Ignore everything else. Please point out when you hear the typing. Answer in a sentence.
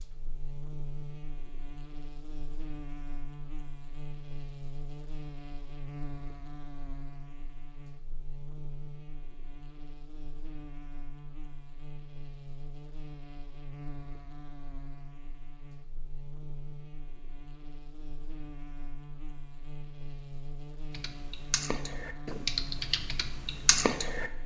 You can hear the typing from 20.9 to 24.3 s.